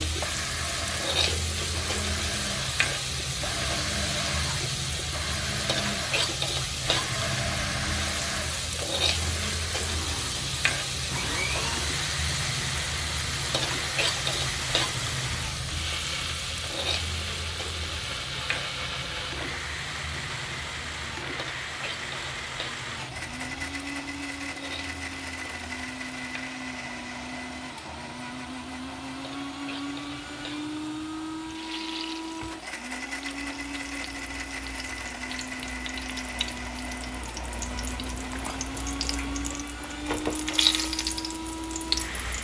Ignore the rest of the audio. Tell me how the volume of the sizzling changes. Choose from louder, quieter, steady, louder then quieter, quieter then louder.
quieter then louder.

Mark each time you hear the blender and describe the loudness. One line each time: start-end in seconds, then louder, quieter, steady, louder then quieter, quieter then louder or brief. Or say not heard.
0.0-42.3 steady.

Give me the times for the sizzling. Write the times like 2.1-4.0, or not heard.
0.0-42.3.